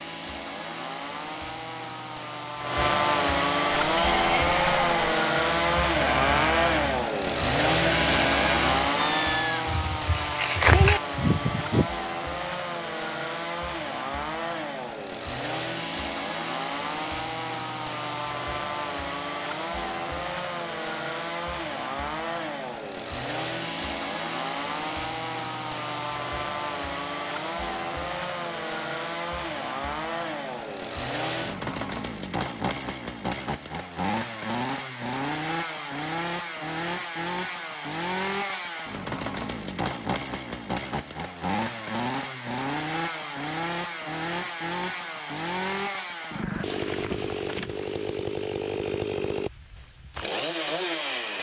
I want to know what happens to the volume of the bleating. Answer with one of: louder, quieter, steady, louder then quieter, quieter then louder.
louder.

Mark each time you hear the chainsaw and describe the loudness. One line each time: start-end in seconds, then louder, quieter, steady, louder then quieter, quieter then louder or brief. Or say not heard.
0.0-51.3 quieter.